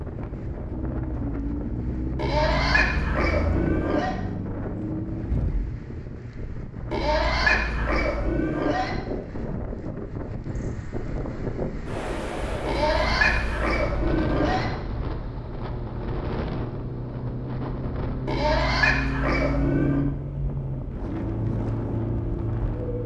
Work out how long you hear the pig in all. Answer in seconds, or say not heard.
8 s.